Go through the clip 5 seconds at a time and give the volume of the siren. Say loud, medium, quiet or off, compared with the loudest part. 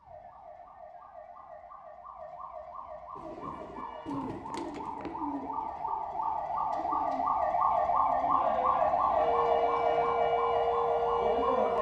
quiet, loud, loud.